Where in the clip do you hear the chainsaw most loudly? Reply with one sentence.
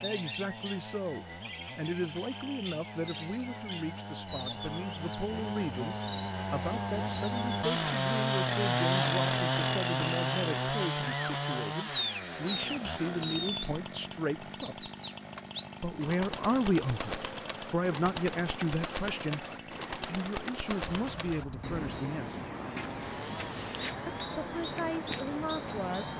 The loudest moment of the chainsaw is at 9 seconds.